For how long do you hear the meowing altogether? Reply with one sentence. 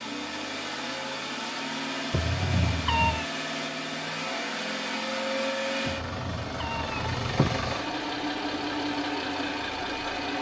You can hear the meowing for 3 seconds altogether.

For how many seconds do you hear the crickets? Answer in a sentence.
The crickets can't be heard in this clip.